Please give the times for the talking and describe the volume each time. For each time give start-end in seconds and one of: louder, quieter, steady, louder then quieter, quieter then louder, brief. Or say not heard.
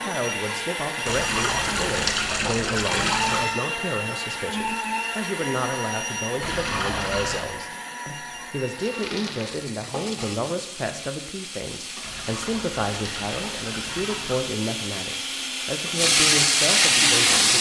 0.0-17.5 steady.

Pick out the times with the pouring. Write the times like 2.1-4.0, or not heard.
1.1-3.5, 6.4-7.5, 12.0-14.5.